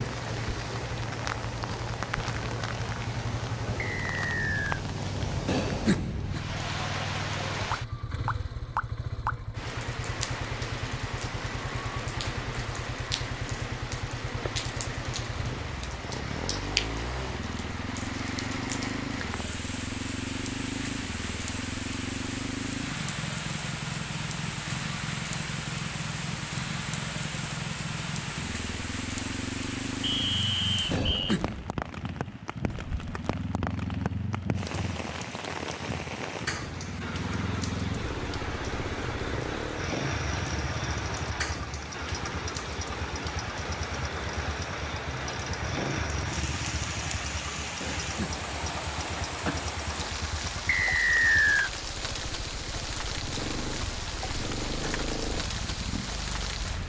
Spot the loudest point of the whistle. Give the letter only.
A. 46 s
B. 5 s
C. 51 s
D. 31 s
C.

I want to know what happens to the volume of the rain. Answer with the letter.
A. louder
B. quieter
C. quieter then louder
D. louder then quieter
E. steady
E.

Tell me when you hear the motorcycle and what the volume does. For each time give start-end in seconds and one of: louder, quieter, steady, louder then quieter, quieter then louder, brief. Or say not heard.
0.0-56.8 steady.